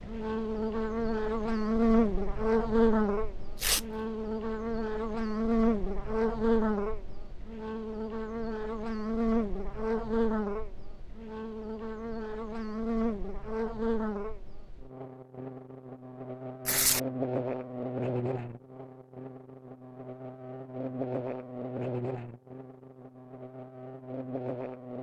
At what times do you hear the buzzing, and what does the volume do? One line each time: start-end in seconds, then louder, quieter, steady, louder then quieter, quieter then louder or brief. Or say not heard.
0.0-24.9 quieter.